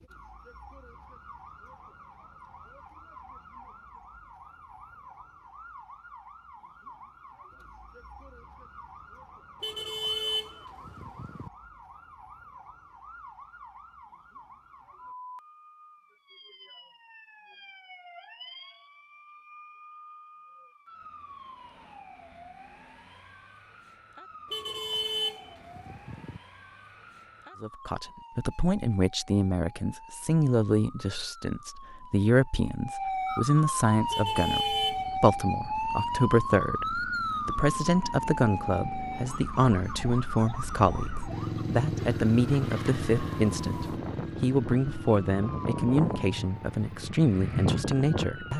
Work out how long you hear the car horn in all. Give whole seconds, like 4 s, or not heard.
5 s.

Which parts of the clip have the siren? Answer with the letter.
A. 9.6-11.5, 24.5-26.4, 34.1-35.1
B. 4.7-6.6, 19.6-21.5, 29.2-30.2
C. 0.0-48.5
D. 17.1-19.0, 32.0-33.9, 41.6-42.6
C.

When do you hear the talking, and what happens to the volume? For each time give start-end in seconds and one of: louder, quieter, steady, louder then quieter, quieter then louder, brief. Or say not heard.
27.6-48.5 steady.